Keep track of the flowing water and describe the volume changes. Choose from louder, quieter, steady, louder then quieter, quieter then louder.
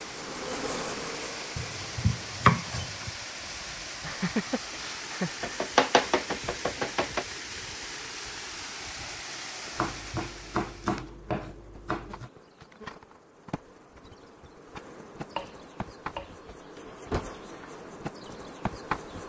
steady.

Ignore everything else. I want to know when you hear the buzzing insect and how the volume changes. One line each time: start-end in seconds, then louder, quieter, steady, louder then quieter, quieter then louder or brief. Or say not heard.
0.0-2.4 brief
9.5-19.2 louder.